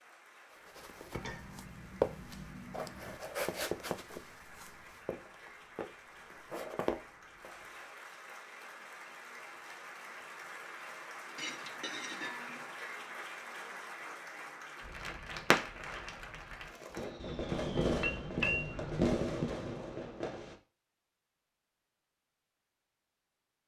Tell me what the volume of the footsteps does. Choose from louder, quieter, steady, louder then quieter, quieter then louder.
quieter then louder.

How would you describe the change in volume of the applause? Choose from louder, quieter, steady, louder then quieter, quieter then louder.
louder.